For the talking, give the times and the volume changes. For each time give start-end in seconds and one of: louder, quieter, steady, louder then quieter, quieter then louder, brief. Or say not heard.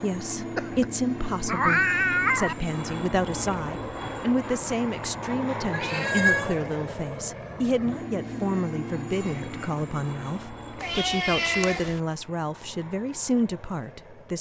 0.0-14.3 steady.